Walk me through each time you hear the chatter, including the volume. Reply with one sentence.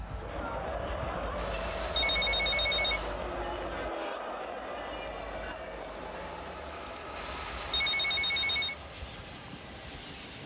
The chatter can be heard from 0.0 to 10.4 s, getting quieter.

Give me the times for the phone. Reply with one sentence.
You can hear the phone from 1.4 to 3.2 s and from 7.2 to 8.8 s.